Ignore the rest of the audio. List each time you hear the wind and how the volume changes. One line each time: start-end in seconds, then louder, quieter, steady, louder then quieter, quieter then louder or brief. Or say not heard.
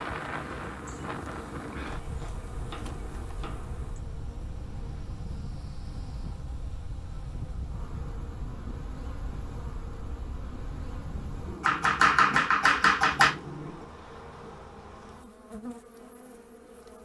0.0-11.6 quieter.